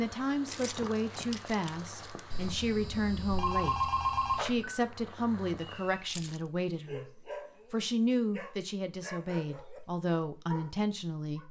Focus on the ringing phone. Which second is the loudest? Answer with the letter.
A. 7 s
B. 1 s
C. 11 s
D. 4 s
D.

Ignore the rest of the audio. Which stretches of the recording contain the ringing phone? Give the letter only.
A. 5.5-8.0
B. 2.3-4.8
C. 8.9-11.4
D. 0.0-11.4
B.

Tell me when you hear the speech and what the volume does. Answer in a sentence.
The speech can be heard from 0.0 to 11.4 s, at a steady volume.